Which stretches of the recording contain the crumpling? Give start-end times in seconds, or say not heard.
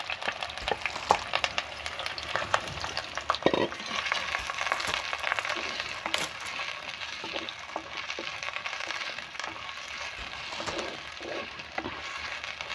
0.6-1.2, 4.3-6.5, 10.2-10.9.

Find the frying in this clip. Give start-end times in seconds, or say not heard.
0.0-12.6.